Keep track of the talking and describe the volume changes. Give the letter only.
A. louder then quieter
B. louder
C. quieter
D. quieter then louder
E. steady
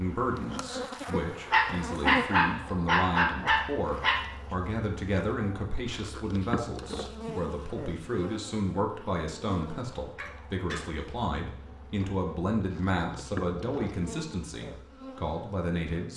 E.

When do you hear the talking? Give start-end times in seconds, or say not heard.
0.0-16.1.